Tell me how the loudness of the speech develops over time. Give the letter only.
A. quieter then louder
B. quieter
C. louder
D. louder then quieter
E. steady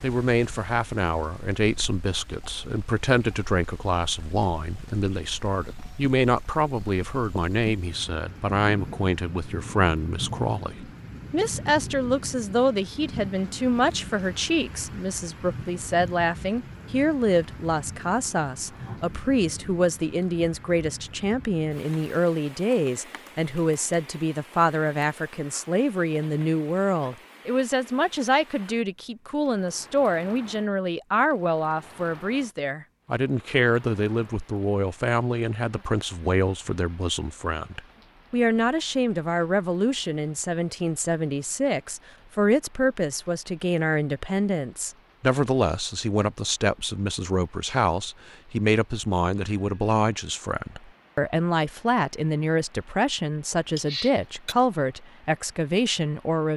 E.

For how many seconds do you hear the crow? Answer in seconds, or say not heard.
not heard.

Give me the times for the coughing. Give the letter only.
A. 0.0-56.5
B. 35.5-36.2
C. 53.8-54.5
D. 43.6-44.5
C.